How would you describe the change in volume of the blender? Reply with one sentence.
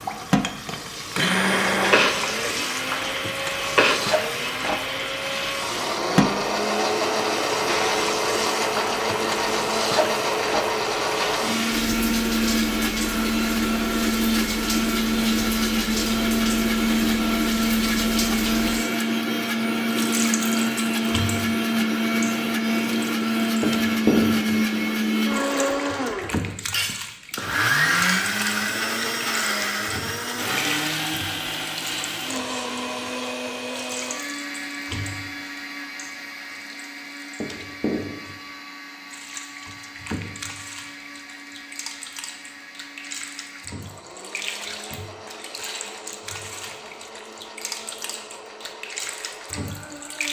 The loudness of the blender goes down.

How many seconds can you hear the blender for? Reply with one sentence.
You can hear the blender for 50 seconds altogether.